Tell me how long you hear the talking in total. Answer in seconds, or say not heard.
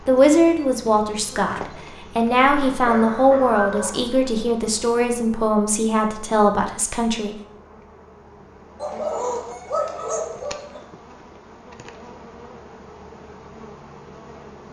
7 s.